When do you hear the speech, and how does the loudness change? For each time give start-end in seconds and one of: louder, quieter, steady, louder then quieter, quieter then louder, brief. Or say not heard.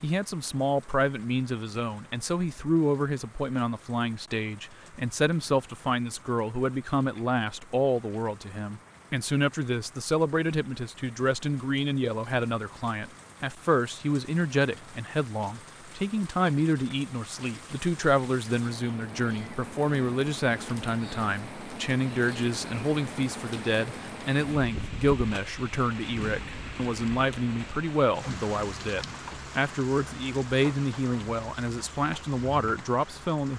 0.0-33.5 steady.